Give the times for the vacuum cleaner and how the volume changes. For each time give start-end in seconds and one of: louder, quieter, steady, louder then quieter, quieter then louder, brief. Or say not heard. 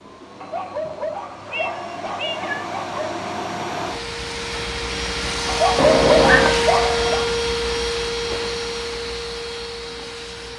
0.0-10.5 louder then quieter.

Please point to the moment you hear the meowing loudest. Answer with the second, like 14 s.
6 s.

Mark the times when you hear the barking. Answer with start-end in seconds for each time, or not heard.
0.4-3.2, 5.5-7.2.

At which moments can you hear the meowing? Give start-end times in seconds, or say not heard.
1.0-2.8, 5.8-6.6.